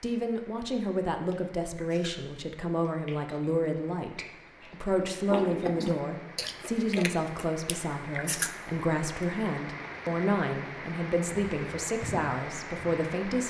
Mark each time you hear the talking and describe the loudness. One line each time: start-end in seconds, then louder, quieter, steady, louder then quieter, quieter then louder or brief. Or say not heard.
0.0-13.4 steady.